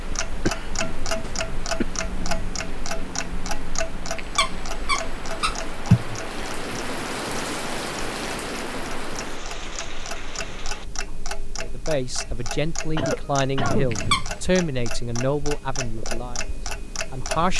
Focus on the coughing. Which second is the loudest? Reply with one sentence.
The volume of the coughing peaks at 6 seconds.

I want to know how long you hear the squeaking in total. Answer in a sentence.
The squeaking can be heard for 2 seconds in total.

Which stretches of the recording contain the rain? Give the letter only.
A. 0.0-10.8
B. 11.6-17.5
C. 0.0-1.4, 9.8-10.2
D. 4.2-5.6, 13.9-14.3
A.